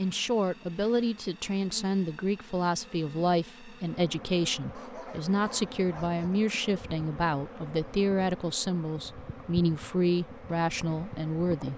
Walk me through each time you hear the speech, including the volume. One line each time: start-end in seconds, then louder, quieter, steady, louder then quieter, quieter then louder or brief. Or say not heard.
0.0-11.7 steady.